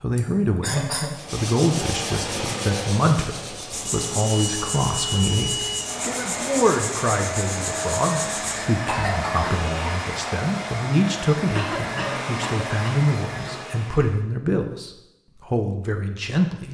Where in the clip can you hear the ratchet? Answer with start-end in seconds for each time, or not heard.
not heard.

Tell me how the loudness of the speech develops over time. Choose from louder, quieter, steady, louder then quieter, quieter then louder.
steady.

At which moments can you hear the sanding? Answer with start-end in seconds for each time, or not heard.
1.1-8.8.